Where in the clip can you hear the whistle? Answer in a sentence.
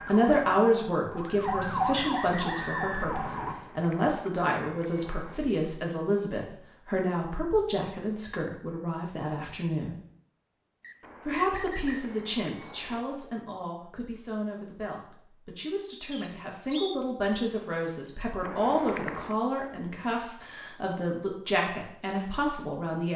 You can hear the whistle from 1.4 to 3.2 s, from 10.8 to 12.1 s and from 16.1 to 17.0 s.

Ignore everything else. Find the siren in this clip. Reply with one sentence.
The siren can be heard from 0.0 to 3.5 s.